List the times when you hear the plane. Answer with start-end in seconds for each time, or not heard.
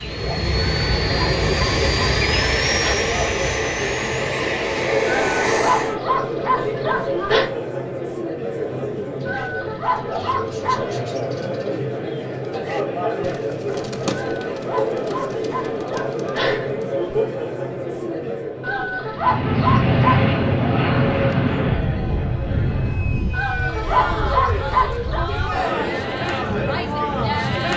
0.0-6.0, 19.1-27.7.